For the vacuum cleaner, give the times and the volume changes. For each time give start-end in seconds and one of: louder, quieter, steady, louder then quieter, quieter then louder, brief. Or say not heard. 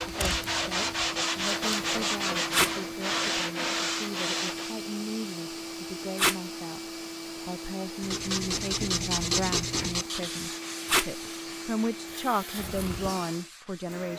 0.0-14.1 steady.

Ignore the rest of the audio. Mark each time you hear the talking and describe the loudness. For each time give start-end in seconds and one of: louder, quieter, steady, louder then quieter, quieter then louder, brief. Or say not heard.
0.0-14.1 louder.